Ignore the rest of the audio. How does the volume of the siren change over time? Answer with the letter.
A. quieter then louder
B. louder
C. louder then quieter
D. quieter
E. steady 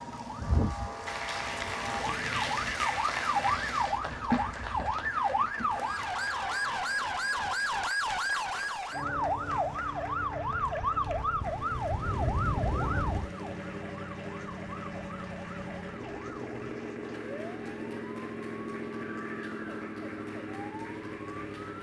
D.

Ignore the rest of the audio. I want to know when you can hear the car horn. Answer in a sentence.
You can hear the car horn from 11.9 to 13.3 s.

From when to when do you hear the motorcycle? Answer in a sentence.
You can hear the motorcycle from 12.0 to 21.7 s.